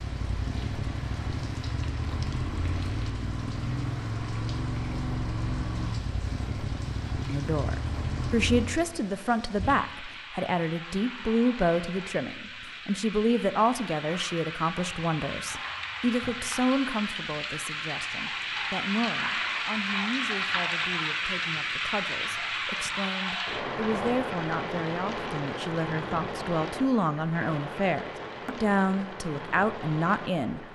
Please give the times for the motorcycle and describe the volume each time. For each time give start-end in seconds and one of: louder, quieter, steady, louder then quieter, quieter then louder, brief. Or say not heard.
0.0-8.8 steady.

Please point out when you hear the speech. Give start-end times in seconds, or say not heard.
7.2-30.6.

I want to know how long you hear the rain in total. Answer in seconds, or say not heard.
31 s.